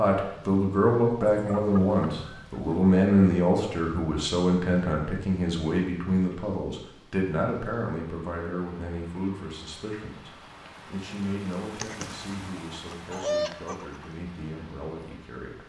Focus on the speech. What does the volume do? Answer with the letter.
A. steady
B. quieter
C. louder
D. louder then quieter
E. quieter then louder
B.